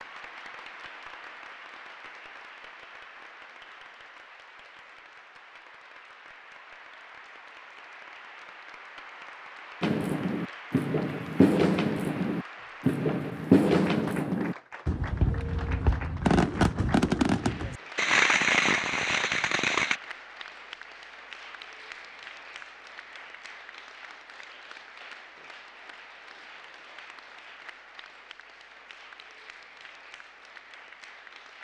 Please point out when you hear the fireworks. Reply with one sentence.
You can hear the fireworks from 9.8 to 20.0 s.